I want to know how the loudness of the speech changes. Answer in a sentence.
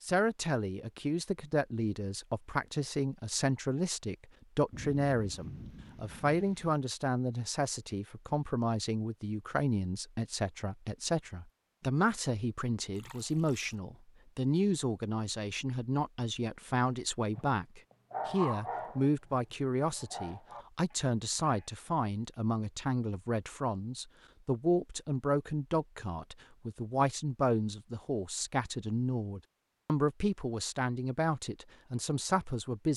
The loudness of the speech stays about the same.